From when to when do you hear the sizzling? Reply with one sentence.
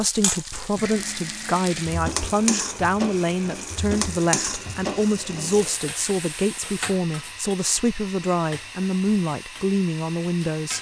The sizzling can be heard from 0.0 to 10.7 s.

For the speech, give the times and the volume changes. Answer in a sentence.
You can hear the speech from 0.0 to 10.7 s, at a steady volume.